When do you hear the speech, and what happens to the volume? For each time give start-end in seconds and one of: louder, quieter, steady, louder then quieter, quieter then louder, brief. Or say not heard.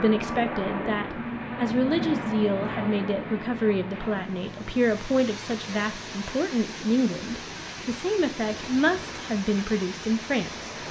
0.0-10.7 steady.